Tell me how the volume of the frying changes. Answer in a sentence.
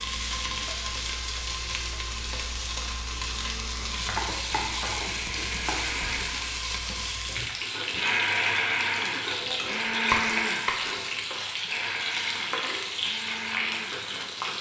The loudness of the frying stays about the same.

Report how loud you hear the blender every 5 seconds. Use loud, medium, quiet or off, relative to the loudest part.
quiet, loud, loud.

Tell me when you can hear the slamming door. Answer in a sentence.
The slamming door can't be heard in this clip.